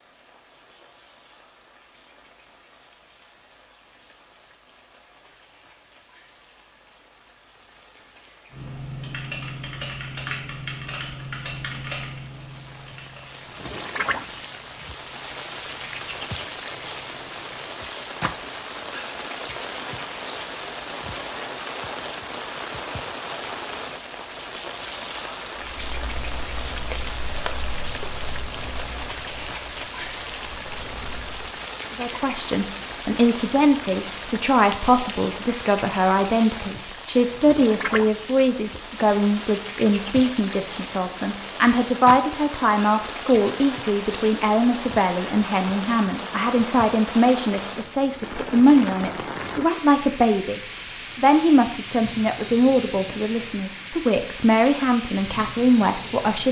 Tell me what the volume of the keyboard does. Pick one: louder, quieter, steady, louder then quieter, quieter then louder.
quieter.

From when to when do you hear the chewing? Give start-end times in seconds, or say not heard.
25.6-31.6.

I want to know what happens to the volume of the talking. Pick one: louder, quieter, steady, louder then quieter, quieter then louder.
steady.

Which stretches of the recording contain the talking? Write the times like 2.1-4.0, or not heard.
31.9-56.4.